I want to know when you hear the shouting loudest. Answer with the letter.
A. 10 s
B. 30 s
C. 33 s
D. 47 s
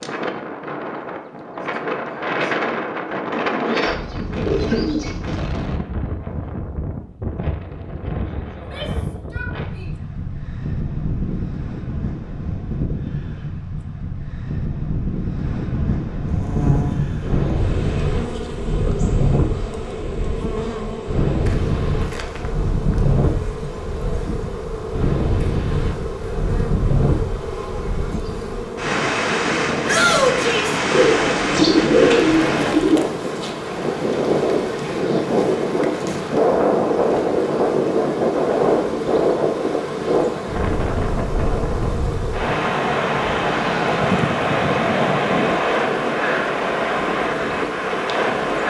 B.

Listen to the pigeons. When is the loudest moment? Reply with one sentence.
The loudest moment of the pigeons is at 32 seconds.